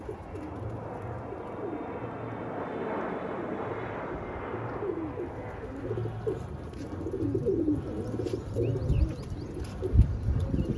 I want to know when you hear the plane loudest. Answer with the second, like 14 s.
3 s.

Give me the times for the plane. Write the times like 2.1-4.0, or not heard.
0.0-10.7.